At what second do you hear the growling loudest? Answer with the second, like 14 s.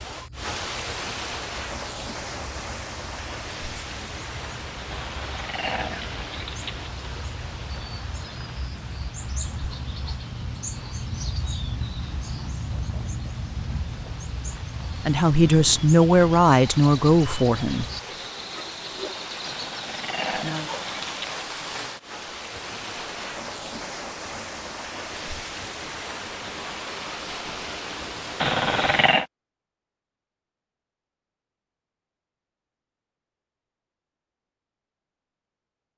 29 s.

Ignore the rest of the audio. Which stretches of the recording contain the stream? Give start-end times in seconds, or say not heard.
0.0-29.2.